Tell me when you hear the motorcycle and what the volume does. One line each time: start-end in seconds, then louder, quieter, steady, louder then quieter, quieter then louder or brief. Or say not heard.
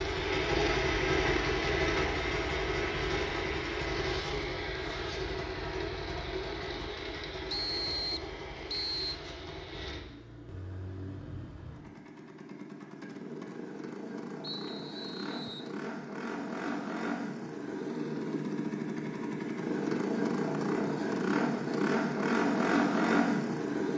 0.0-23.9 quieter then louder.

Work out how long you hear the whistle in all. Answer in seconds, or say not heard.
3 s.